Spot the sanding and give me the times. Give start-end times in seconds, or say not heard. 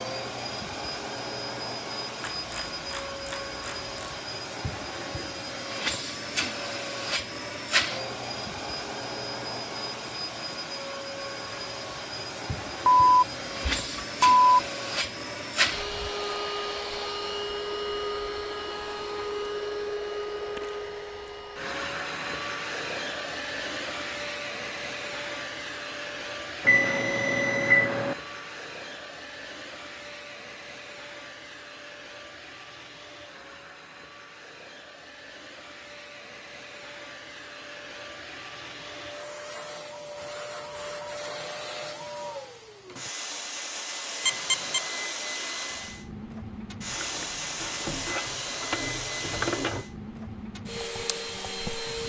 not heard.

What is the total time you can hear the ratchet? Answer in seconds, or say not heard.
5 s.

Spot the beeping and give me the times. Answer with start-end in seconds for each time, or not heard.
13.0-14.4, 26.6-28.1, 44.2-44.8.